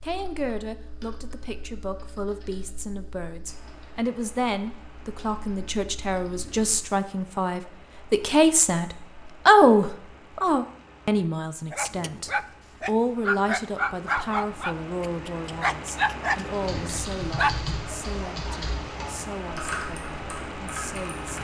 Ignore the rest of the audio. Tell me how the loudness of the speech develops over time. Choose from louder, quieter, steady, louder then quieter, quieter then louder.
louder then quieter.